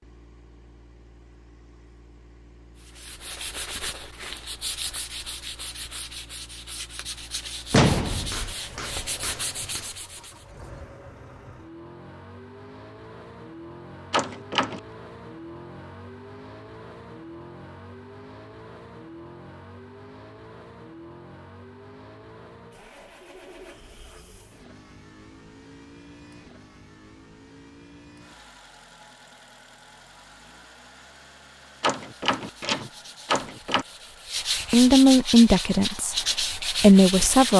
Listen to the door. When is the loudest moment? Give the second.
8 s.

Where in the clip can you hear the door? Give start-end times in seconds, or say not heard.
7.7-8.6, 14.1-14.8, 31.8-33.9.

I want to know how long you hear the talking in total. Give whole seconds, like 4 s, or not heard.
2 s.